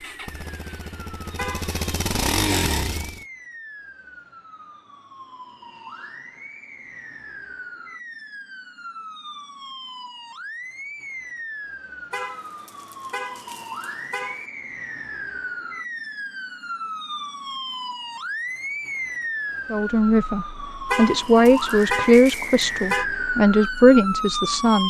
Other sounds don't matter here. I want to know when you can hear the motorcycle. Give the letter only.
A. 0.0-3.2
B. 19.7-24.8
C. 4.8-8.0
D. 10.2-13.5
A.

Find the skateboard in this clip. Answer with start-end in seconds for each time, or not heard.
not heard.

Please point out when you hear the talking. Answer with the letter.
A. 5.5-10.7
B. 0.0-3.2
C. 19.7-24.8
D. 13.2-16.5
C.